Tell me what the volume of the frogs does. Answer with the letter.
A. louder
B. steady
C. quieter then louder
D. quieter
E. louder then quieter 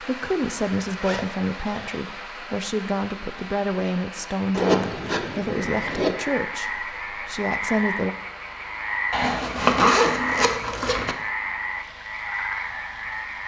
B.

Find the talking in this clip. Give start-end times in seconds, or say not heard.
0.0-8.2.